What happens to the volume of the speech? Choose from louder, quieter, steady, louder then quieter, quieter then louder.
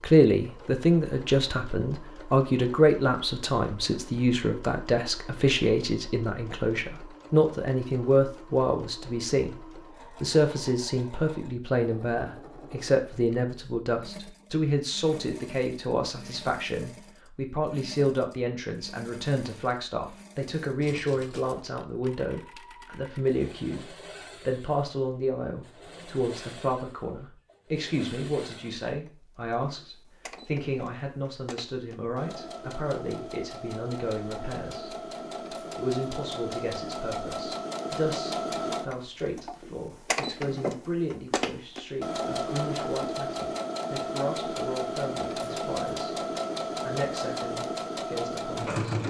quieter.